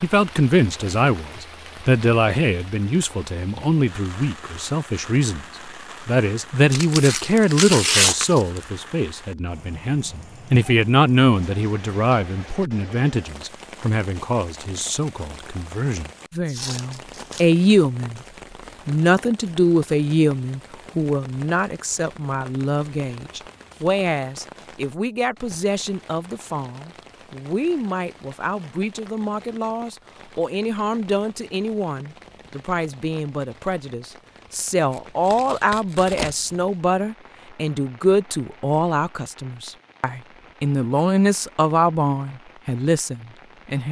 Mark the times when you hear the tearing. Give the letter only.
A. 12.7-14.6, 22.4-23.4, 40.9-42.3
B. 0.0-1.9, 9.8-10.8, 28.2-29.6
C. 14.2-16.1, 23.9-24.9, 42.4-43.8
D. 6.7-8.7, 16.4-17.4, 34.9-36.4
D.